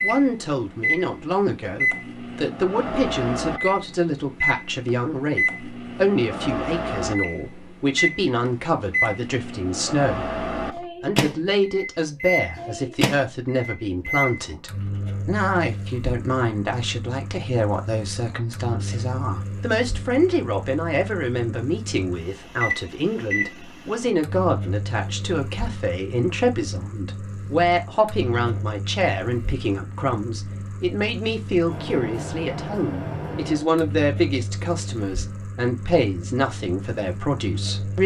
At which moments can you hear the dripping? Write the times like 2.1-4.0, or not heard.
not heard.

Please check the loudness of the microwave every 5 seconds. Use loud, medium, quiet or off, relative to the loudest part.
loud, loud, loud, medium, medium, medium, medium, medium.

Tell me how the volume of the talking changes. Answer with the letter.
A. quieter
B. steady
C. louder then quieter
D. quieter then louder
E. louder
B.